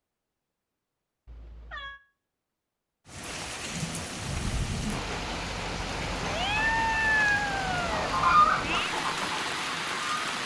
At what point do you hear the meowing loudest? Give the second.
7 s.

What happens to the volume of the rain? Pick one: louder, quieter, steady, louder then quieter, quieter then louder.
steady.